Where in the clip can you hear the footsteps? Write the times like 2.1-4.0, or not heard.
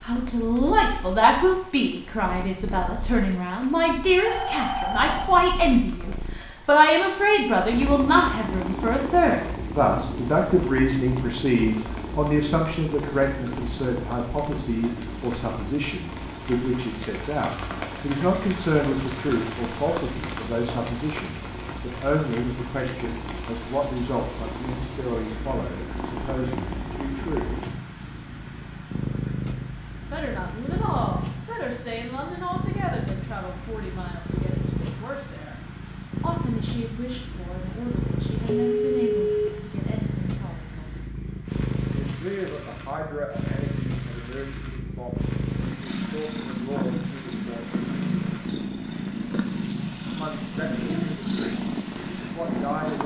not heard.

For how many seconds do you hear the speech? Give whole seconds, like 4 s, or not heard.
46 s.